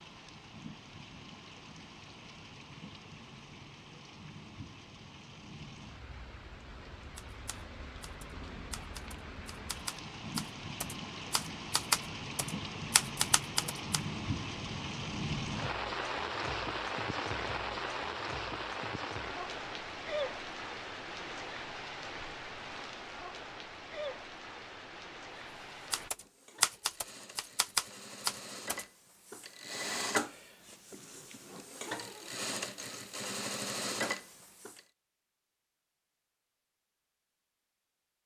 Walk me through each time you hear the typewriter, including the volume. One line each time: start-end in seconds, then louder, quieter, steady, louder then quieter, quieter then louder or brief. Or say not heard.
7.2-14.0 louder
25.9-28.9 brief.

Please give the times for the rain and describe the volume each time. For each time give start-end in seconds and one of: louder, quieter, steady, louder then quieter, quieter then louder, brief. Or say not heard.
0.0-26.1 louder then quieter.